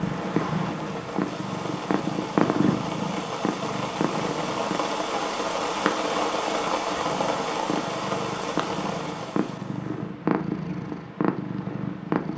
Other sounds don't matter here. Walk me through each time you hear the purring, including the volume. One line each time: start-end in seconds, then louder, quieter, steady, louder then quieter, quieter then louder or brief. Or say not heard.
0.0-12.3 quieter then louder.